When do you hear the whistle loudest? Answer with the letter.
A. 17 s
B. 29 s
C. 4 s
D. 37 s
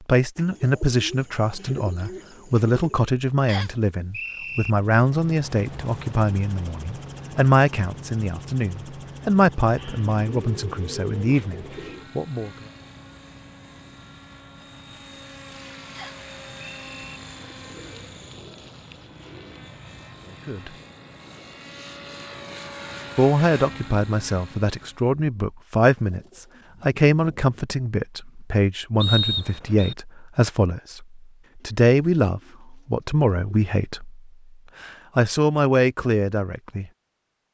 B.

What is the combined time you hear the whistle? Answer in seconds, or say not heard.
3 s.